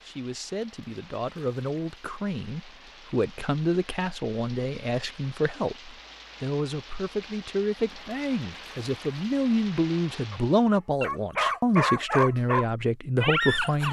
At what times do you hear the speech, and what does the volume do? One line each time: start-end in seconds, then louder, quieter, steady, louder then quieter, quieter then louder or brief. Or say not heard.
0.0-13.8 louder.